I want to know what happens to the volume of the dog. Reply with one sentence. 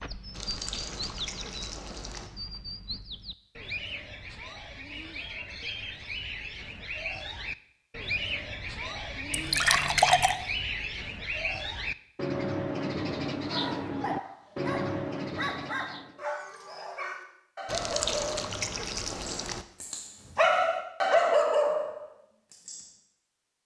The volume of the dog goes up.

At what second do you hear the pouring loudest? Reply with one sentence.
The volume of the pouring peaks at 10 seconds.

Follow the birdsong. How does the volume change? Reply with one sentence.
The loudness of the birdsong goes up.